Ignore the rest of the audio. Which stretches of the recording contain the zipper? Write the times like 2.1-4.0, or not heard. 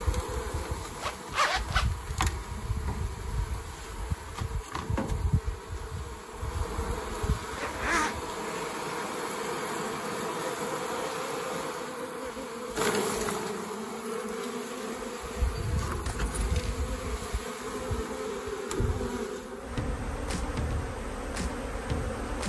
0.8-1.9, 7.5-8.2, 16.1-16.8.